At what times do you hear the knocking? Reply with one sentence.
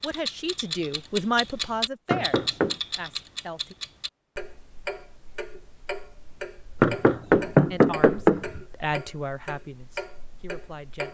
The knocking can be heard from 2.1 to 2.8 s and from 6.8 to 8.6 s.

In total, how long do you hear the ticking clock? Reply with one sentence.
You can hear the ticking clock for 11 seconds altogether.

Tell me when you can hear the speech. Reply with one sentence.
You can hear the speech from 0.0 to 3.8 s and from 7.7 to 11.0 s.